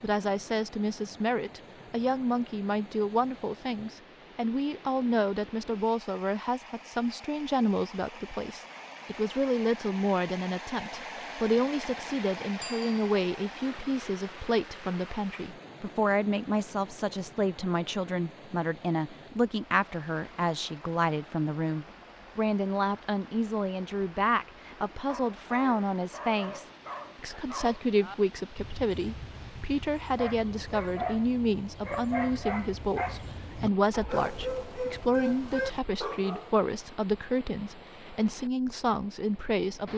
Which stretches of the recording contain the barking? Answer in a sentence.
You can hear the barking from 25.1 to 36.5 s.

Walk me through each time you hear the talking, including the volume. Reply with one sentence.
The talking can be heard from 0.0 to 39.9 s, at a steady volume.